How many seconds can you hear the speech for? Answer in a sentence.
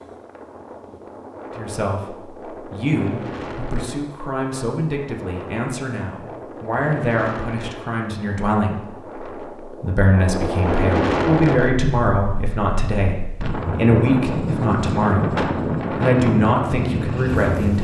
The speech can be heard for 16 seconds in total.